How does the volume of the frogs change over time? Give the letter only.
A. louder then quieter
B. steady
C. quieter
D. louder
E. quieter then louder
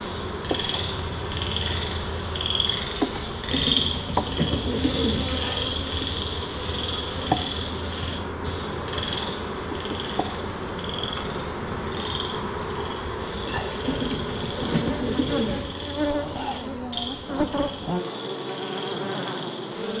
C.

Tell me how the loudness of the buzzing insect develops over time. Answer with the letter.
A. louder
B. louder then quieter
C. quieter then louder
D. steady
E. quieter
D.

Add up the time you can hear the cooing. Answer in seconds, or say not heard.
4 s.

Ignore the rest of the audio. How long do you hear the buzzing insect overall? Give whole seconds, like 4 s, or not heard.
20 s.